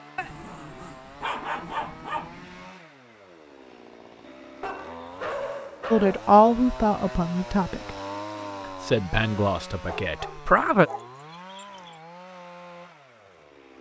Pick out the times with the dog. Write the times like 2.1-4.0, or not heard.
0.1-2.5, 4.6-6.2, 9.8-11.9.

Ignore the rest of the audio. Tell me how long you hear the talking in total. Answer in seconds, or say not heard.
4 s.